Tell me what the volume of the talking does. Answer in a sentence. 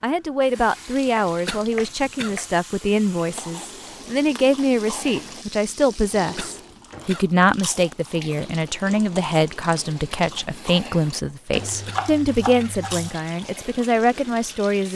The volume of the talking stays about the same.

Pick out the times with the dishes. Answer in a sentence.
The dishes can't be heard in this clip.